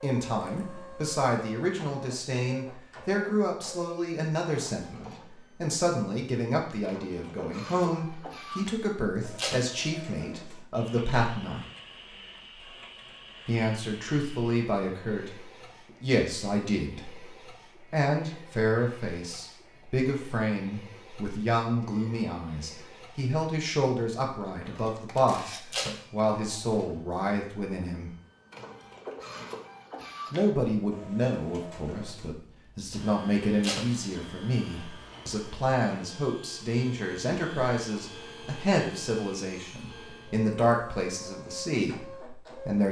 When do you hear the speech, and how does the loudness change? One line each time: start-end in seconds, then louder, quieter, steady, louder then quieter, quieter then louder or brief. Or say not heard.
0.0-11.7 steady
13.4-15.4 brief
16.0-28.1 steady
30.3-42.8 steady.